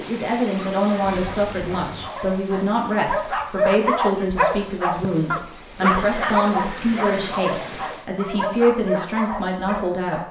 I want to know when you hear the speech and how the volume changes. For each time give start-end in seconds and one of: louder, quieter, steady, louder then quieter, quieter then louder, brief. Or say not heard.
0.0-10.2 steady.